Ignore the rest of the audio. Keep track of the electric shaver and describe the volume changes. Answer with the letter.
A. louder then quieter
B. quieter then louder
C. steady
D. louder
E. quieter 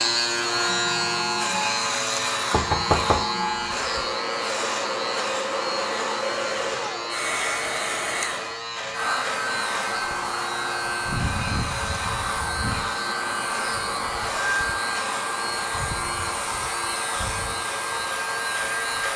E.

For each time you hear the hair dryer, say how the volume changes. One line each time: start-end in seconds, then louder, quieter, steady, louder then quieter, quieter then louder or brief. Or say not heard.
0.0-19.1 steady.